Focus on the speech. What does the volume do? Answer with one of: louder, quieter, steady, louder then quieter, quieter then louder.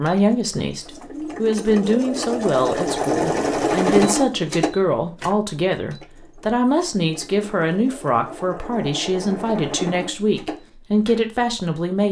steady.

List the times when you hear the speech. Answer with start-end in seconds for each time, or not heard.
0.0-12.0.